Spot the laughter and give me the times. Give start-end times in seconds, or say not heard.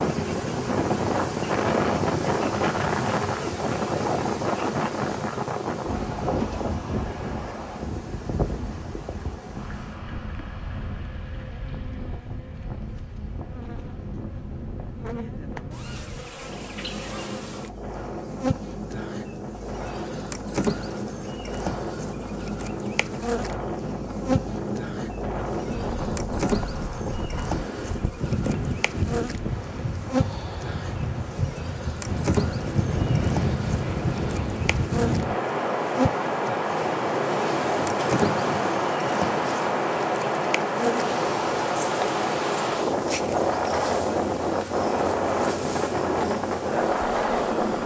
not heard.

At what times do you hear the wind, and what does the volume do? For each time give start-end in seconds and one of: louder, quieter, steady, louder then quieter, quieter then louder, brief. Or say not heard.
0.0-47.8 quieter then louder.